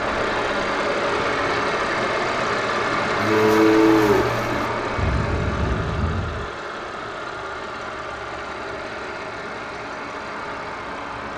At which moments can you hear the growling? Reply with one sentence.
The growling can't be heard in this clip.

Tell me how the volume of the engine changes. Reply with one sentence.
The volume of the engine goes down.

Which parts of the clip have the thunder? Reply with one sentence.
The thunder can be heard from 5.0 to 6.5 s.